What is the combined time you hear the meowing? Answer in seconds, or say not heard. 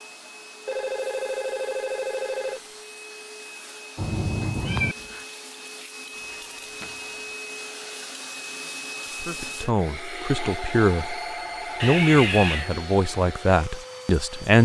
2 s.